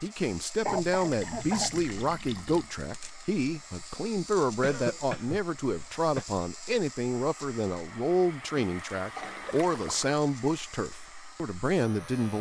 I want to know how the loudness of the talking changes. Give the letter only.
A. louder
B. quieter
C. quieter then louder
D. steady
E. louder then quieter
D.